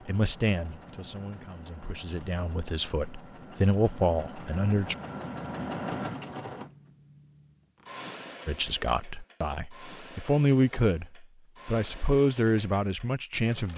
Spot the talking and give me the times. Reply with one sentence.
You can hear the talking from 0.1 to 5.0 s and from 8.4 to 13.7 s.